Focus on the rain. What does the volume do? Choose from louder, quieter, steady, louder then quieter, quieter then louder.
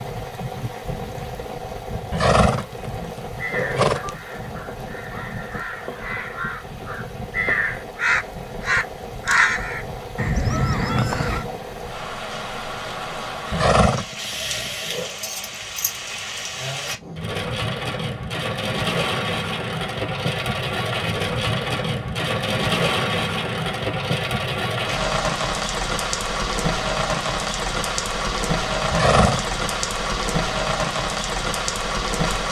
louder.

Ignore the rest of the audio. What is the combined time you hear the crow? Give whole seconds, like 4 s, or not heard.
8 s.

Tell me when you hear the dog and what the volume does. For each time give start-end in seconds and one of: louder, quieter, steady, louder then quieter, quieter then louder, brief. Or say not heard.
not heard.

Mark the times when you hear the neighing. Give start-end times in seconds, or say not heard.
2.1-4.2, 13.5-15.1, 28.9-29.6.